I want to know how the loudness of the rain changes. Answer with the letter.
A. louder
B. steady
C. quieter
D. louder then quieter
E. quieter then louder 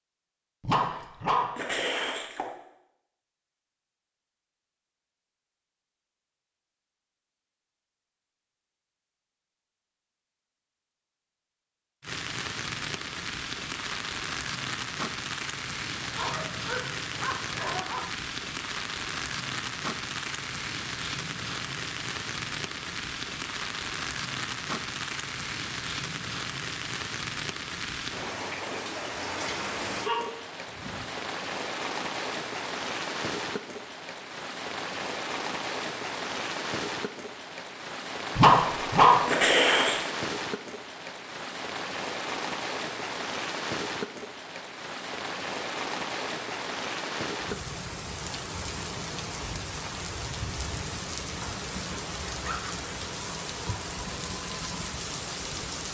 B.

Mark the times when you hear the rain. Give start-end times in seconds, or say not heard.
12.0-55.8.